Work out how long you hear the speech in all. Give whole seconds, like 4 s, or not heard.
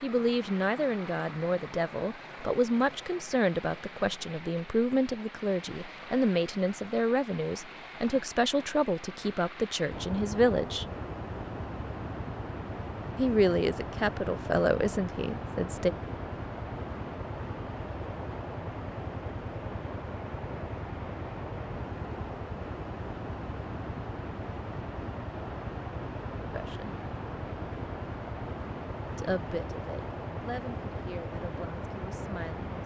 18 s.